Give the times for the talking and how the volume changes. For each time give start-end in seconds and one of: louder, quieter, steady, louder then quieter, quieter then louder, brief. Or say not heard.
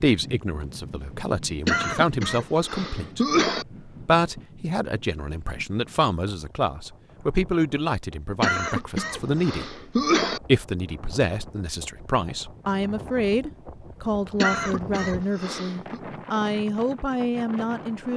0.0-18.1 steady.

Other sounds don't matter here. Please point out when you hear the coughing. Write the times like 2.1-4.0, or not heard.
1.6-3.6, 8.4-10.4, 14.3-16.0.